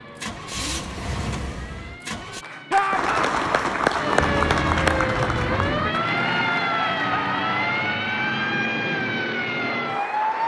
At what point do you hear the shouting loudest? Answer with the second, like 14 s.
3 s.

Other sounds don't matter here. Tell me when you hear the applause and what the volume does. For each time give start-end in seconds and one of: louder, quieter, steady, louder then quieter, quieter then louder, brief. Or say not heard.
2.4-10.4 quieter.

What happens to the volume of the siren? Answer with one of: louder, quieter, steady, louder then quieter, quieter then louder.
louder.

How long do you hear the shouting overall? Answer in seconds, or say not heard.
2 s.